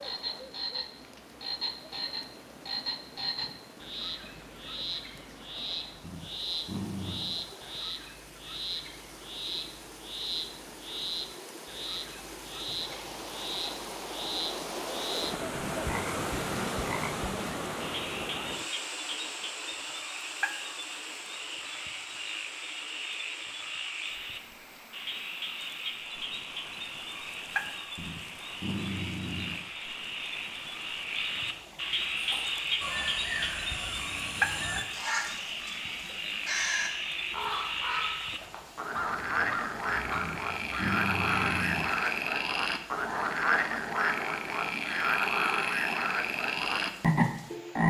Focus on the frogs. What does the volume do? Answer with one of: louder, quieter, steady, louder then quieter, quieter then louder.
louder.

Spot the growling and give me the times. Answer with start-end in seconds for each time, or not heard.
6.0-7.4, 27.9-29.6, 40.1-41.9.